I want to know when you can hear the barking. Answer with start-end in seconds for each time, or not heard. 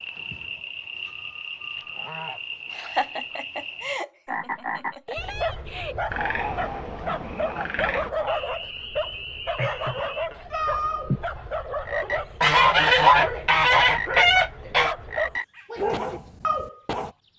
5.2-17.1.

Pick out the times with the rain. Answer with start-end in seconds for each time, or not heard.
not heard.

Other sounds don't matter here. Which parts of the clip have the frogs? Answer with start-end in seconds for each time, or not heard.
0.0-17.3.